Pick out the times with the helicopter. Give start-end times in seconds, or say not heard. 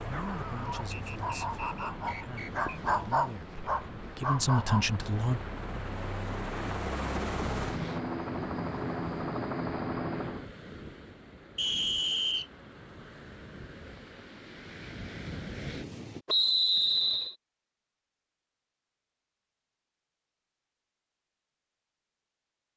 0.0-10.4.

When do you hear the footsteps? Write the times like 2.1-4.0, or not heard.
not heard.